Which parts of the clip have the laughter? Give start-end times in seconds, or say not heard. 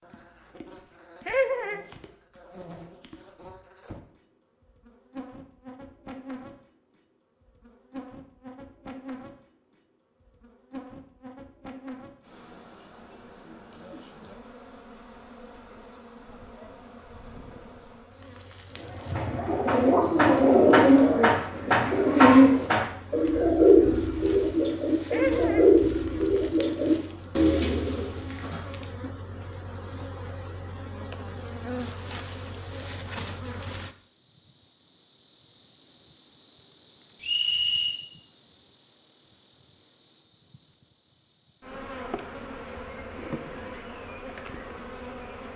1.2-1.8, 25.1-25.7.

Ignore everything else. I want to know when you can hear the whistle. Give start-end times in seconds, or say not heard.
37.2-38.0.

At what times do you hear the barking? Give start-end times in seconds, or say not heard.
not heard.